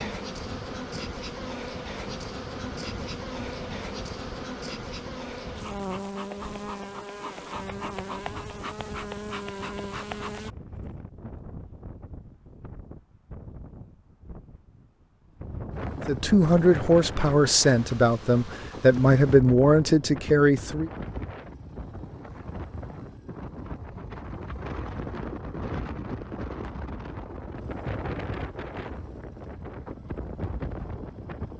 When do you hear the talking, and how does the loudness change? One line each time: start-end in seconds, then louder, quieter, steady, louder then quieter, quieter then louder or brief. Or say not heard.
16.1-20.9 steady.